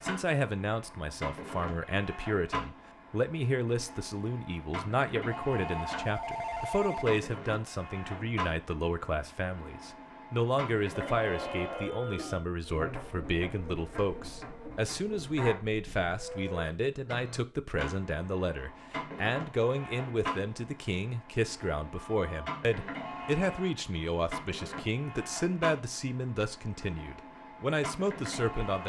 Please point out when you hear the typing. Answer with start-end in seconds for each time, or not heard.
not heard.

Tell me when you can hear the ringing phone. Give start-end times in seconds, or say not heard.
5.3-7.2, 10.9-12.4, 21.9-22.6.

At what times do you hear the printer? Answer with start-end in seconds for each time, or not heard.
0.0-28.8.